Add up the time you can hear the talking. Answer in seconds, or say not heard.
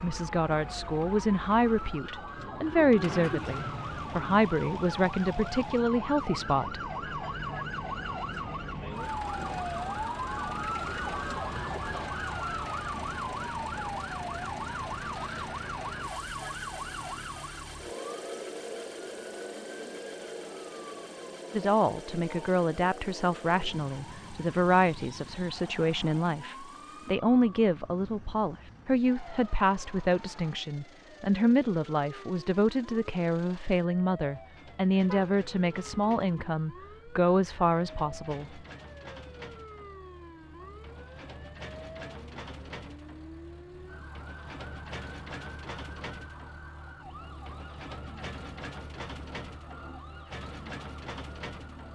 24 s.